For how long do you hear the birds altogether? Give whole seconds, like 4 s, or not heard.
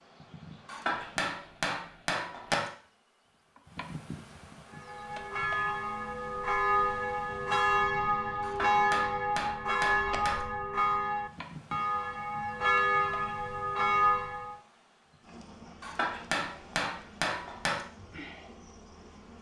not heard.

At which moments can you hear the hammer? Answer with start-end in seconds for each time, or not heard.
0.7-2.7, 8.4-10.4, 15.8-17.9.